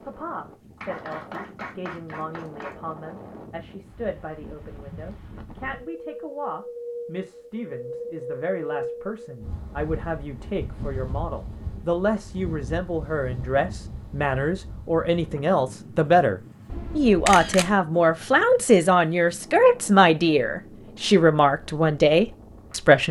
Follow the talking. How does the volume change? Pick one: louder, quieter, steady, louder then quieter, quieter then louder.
louder.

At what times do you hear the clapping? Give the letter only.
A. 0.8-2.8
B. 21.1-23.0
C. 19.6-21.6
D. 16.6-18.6
A.